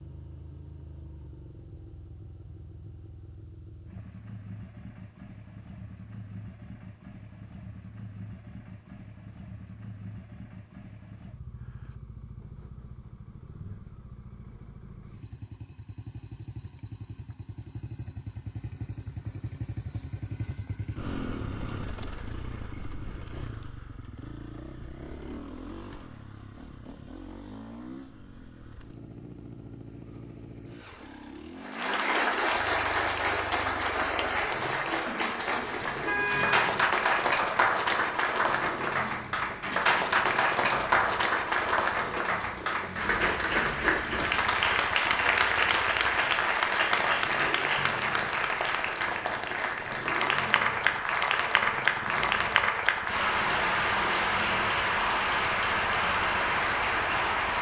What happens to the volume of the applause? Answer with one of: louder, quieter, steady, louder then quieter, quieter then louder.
steady.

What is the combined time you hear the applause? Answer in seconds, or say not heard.
26 s.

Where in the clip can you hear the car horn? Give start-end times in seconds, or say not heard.
36.0-36.6.